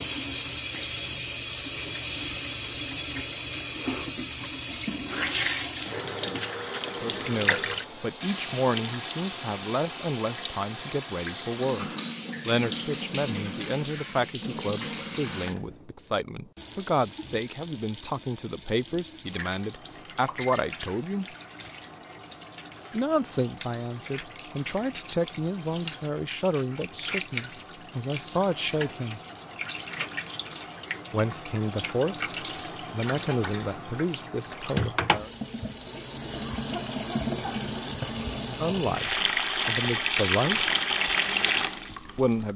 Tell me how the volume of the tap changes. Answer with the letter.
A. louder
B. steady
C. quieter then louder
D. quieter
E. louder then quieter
C.